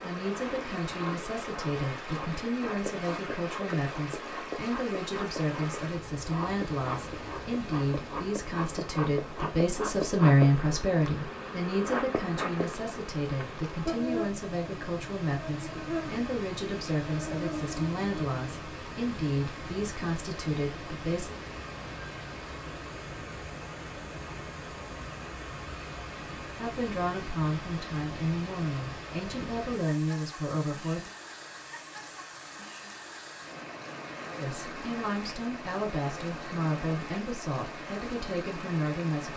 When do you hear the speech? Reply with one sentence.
You can hear the speech from 0.0 to 21.4 s, from 26.6 to 31.1 s and from 34.4 to 39.3 s.